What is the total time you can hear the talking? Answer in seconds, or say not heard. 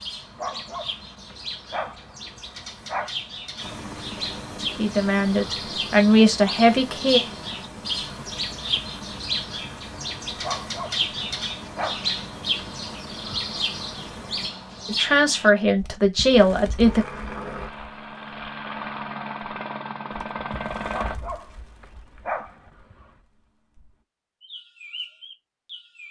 5 s.